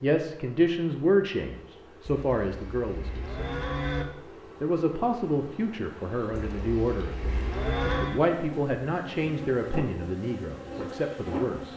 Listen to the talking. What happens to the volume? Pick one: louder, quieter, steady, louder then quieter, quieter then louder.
quieter.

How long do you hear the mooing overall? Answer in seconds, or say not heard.
4 s.